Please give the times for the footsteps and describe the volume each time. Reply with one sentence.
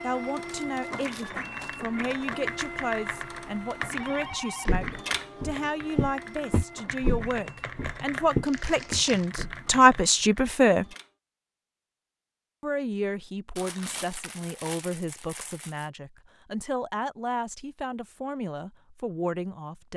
You can hear the footsteps from 4.3 to 9.7 s, getting louder then quieter.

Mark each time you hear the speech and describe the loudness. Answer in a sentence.
The speech can be heard from 0.0 to 10.8 s, getting louder; and from 12.6 to 19.9 s, at a steady volume.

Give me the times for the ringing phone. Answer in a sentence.
You can hear the ringing phone from 4.0 to 4.8 s.